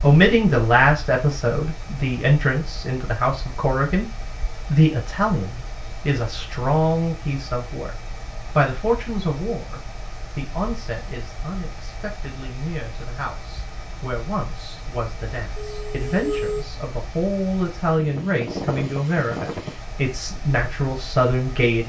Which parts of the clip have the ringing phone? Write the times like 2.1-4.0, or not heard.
15.6-16.6.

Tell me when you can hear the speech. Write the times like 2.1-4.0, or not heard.
0.0-4.0, 4.7-7.9, 8.6-21.8.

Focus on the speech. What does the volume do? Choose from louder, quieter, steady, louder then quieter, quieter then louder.
quieter then louder.